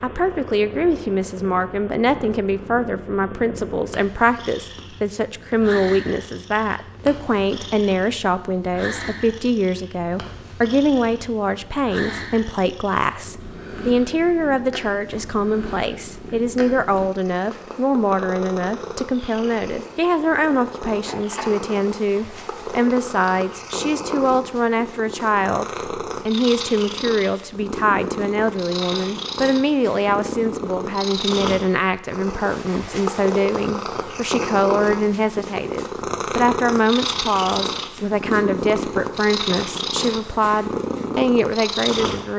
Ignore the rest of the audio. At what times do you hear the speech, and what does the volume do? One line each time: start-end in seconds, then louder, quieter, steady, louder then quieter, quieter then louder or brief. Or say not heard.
0.0-42.3 steady.